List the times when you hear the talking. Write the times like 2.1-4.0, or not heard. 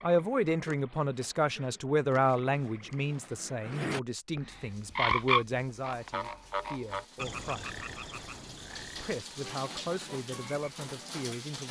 0.0-7.7, 9.0-11.6.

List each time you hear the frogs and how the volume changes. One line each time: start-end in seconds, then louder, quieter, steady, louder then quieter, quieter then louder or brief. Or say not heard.
0.0-11.3 louder then quieter.